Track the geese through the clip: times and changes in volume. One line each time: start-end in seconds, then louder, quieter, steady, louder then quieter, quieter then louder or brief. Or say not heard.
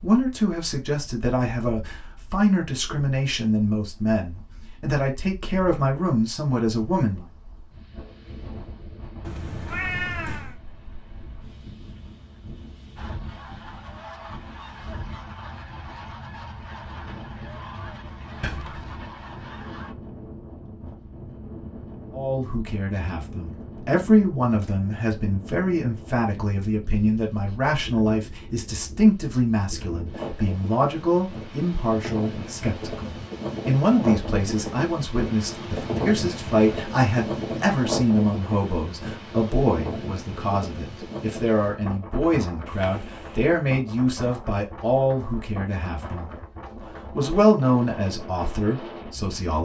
12.9-19.9 steady.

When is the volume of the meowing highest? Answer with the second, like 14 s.
10 s.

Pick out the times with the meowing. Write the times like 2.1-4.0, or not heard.
9.2-10.6, 18.4-19.0, 42.6-43.4.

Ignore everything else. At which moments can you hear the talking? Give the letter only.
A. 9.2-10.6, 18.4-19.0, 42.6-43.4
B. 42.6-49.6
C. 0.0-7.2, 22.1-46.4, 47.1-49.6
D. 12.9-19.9
C.